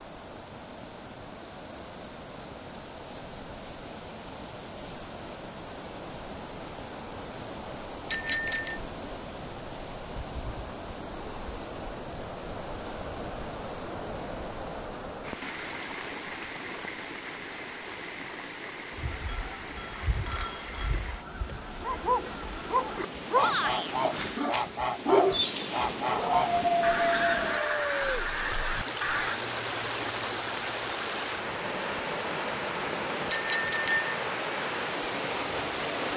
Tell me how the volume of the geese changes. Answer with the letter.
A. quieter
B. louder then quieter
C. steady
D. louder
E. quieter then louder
D.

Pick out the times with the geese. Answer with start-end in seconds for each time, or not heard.
18.9-29.4.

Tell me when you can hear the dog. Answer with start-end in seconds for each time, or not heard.
21.8-27.9.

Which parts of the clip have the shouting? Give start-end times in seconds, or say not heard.
23.4-23.9.